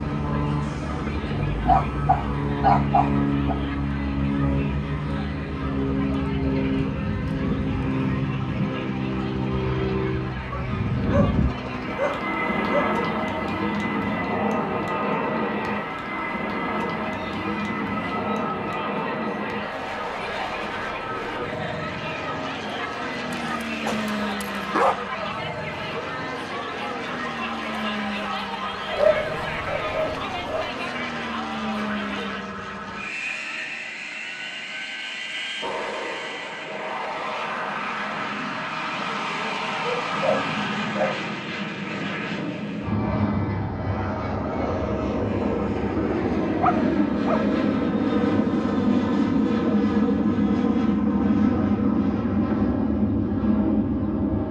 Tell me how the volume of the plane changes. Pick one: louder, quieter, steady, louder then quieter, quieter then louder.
quieter then louder.